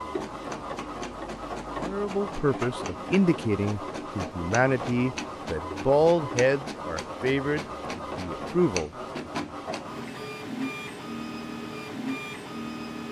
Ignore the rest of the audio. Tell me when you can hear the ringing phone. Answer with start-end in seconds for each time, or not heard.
not heard.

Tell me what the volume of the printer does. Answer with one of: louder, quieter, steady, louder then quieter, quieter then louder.
steady.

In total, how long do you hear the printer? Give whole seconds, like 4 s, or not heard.
13 s.